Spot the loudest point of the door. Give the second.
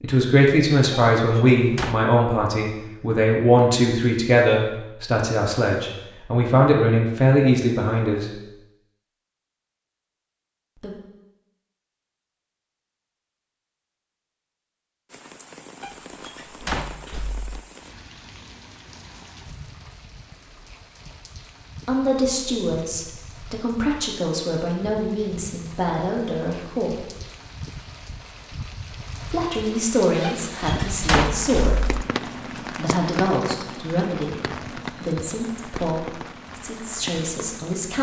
31 s.